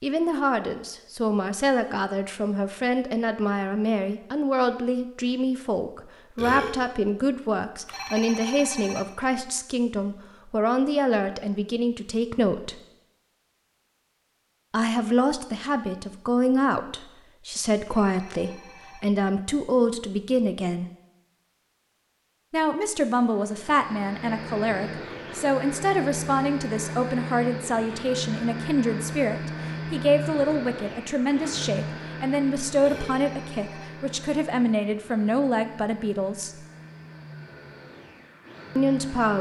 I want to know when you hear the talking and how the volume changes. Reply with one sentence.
You can hear the talking from 0.0 to 12.8 s, at a steady volume; from 14.7 to 20.9 s, at a steady volume; from 22.5 to 36.6 s, at a steady volume; and briefly from 38.8 to 39.3 s.